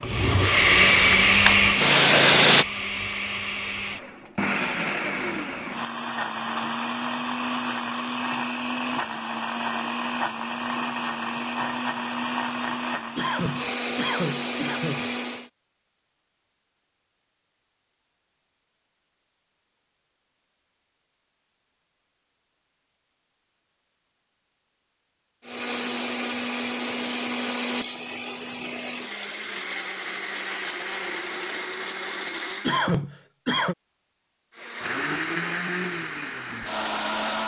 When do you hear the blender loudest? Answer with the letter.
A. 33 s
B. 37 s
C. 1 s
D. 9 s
C.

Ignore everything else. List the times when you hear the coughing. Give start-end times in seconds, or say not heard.
13.2-15.1, 32.6-33.8.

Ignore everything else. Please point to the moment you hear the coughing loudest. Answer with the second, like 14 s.
33 s.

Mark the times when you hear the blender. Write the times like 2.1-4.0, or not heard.
0.0-15.5, 25.4-32.8, 34.5-37.4.